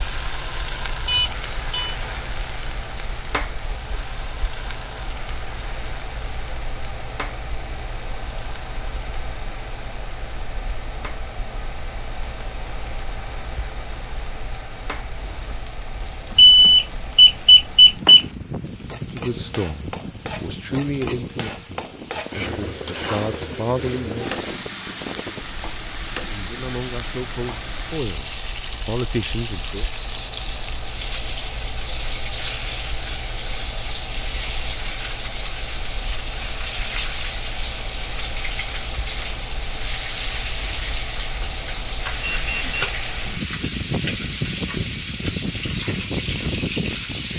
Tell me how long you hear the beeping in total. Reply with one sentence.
The beeping can be heard for 3 seconds in total.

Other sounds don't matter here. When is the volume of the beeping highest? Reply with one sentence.
The loudest moment of the beeping is at 17 seconds.